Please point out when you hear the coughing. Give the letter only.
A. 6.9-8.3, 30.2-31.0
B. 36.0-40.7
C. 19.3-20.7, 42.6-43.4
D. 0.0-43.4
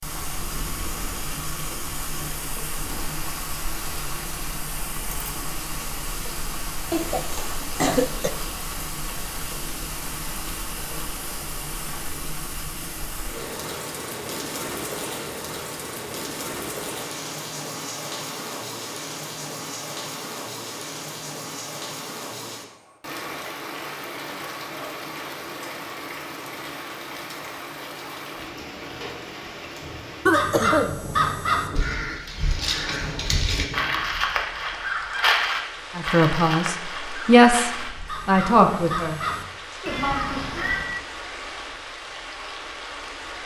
A.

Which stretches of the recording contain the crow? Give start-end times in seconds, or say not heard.
30.3-41.0.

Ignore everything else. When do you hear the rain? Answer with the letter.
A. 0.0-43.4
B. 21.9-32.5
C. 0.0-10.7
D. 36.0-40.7
A.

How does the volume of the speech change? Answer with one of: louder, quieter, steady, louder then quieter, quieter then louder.
louder then quieter.